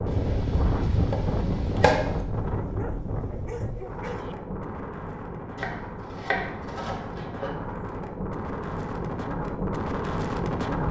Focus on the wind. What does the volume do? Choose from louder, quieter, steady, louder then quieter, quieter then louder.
quieter then louder.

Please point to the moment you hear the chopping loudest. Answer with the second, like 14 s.
2 s.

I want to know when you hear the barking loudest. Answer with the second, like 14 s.
4 s.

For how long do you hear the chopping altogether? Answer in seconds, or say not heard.
4 s.